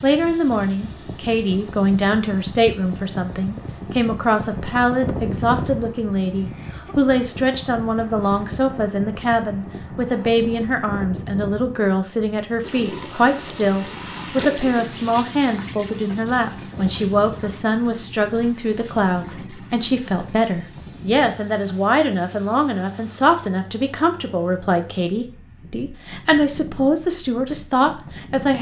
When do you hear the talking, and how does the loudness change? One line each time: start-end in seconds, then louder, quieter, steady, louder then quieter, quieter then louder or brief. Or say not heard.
0.0-28.5 steady.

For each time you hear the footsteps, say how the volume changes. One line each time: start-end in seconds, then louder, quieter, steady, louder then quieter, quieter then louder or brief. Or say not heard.
not heard.